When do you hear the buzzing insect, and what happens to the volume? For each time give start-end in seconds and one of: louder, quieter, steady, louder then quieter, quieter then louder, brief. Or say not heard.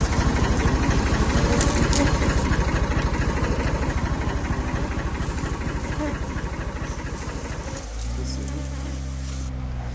0.0-9.9 quieter.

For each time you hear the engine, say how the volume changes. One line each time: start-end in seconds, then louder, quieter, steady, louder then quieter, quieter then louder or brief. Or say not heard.
0.0-9.9 quieter.